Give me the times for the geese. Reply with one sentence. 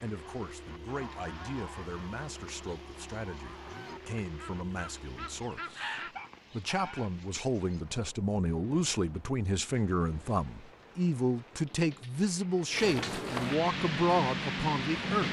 The geese can be heard from 0.8 to 7.1 s.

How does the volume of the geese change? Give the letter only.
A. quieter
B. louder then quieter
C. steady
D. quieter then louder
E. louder
D.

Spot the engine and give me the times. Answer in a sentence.
You can hear the engine from 0.0 to 5.4 s.